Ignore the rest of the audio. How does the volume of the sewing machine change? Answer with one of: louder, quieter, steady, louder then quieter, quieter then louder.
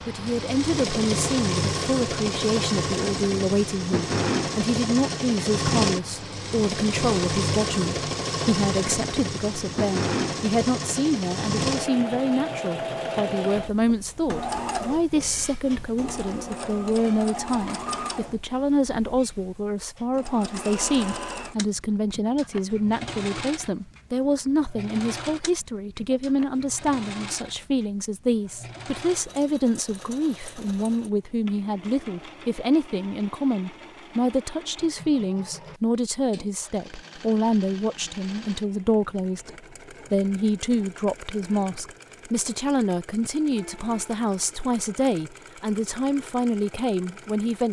quieter.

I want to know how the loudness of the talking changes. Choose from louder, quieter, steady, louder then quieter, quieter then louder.
steady.